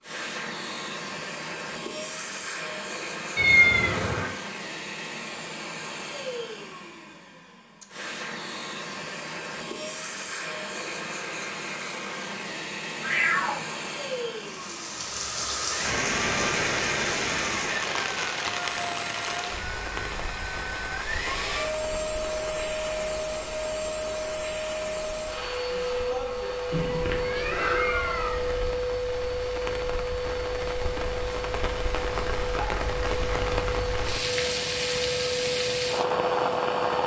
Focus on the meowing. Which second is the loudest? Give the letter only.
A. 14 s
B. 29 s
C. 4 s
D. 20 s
C.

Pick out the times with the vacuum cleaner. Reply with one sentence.
The vacuum cleaner can be heard from 0.0 to 37.0 s.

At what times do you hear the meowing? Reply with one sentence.
The meowing can be heard from 3.4 to 4.3 s, from 13.0 to 13.7 s and from 26.7 to 28.7 s.